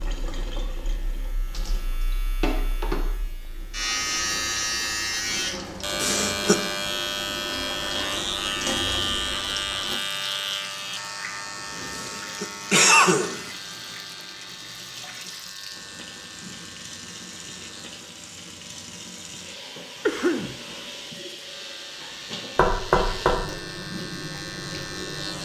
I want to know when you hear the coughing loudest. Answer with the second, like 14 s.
13 s.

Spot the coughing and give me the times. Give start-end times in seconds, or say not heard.
6.0-6.7, 11.9-13.4, 20.1-20.6.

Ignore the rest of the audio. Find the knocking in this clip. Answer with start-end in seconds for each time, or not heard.
22.6-23.5.